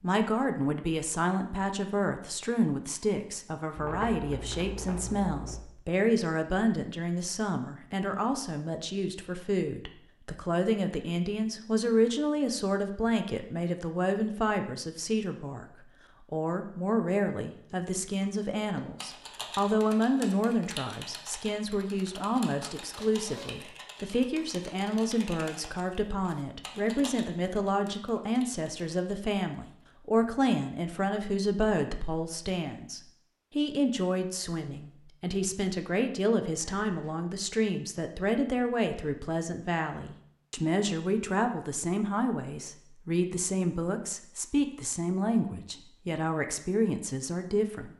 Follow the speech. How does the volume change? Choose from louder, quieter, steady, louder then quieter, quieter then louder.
steady.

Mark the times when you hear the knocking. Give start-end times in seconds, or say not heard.
not heard.